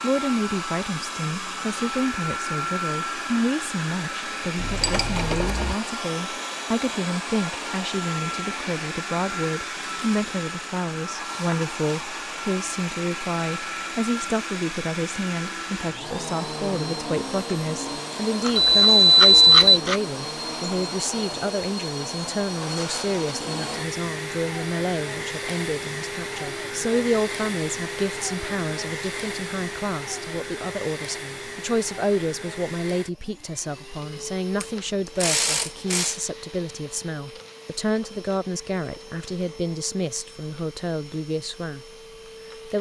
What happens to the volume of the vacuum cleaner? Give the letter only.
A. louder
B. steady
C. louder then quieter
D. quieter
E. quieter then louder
D.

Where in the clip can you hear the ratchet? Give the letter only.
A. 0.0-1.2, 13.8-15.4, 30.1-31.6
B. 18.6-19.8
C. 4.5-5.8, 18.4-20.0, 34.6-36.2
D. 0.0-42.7
C.